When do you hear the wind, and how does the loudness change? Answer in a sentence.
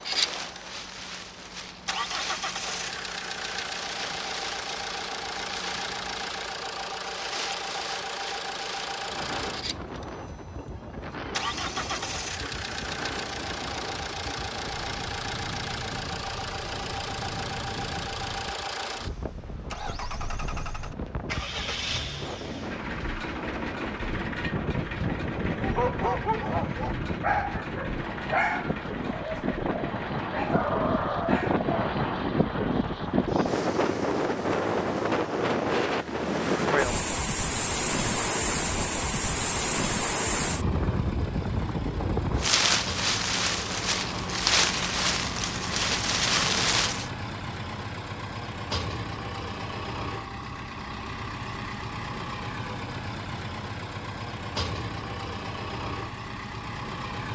You can hear the wind from 0.0 to 47.1 s, getting louder.